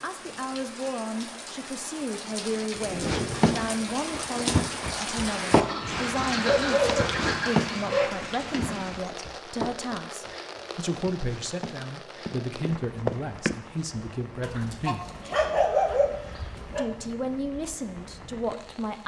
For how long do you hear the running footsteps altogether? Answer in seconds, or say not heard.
11 s.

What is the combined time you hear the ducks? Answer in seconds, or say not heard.
2 s.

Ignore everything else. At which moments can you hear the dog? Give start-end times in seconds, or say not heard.
2.8-4.2, 6.5-8.1, 14.4-16.9.